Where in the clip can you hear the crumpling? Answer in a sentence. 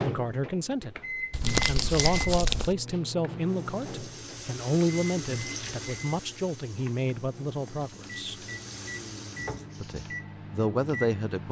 The crumpling can be heard from 1.3 to 2.8 s and from 6.7 to 7.9 s.